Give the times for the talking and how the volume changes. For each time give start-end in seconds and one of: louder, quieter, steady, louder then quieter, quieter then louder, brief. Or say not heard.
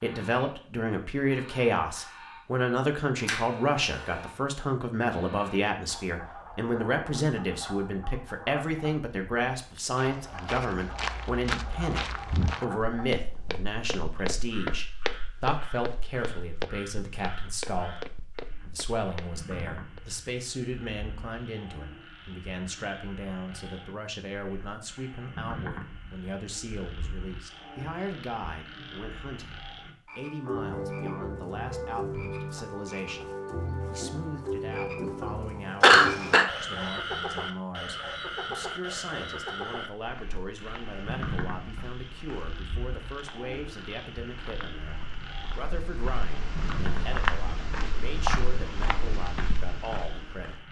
0.0-33.3 quieter
33.9-50.6 steady.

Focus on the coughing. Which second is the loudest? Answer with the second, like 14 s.
36 s.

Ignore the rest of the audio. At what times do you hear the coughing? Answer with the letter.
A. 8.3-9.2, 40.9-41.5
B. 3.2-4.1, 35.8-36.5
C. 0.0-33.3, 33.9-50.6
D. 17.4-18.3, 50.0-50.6
B.